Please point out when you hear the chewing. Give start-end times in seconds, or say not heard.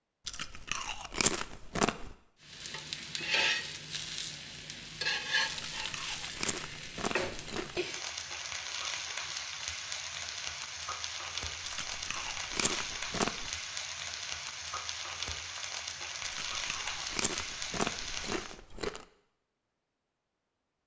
0.2-2.1, 5.5-7.8, 11.7-13.5, 16.2-19.1.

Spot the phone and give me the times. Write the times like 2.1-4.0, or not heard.
not heard.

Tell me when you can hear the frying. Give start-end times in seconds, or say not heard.
2.4-18.6.